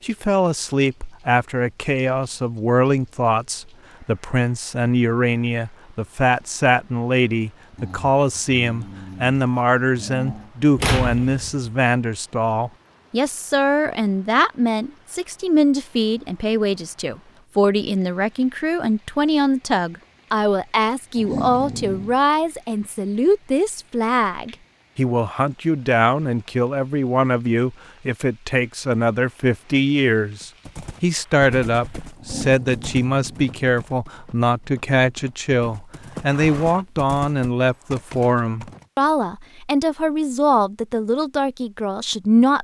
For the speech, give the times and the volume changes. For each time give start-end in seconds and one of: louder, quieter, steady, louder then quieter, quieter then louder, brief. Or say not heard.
0.0-42.5 steady.